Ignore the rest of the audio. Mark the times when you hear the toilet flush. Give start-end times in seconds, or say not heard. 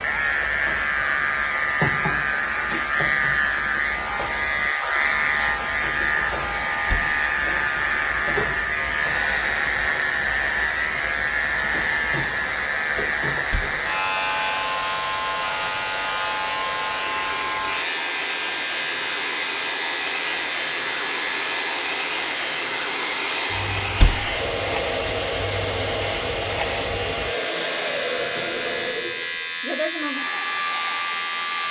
not heard.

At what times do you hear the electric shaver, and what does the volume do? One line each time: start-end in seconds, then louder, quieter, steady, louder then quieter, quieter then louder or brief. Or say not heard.
0.0-31.6 quieter.